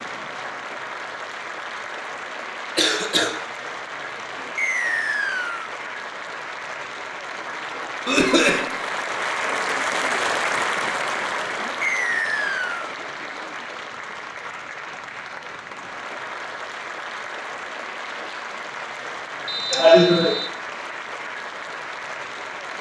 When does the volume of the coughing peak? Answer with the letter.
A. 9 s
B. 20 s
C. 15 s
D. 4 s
B.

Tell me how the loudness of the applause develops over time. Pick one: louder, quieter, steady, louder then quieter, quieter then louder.
louder then quieter.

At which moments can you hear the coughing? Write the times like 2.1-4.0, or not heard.
2.8-3.4, 8.1-8.7, 19.7-20.4.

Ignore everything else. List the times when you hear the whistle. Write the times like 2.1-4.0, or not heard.
4.5-5.7, 11.8-12.9, 19.4-20.5.